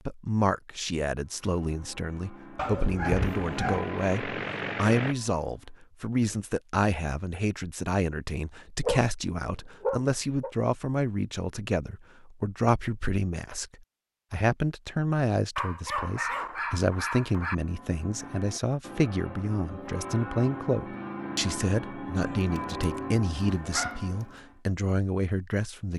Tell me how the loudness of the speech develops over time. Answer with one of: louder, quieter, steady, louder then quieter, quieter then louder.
steady.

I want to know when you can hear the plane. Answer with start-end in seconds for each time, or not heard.
3.1-5.2.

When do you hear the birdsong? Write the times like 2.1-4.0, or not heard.
not heard.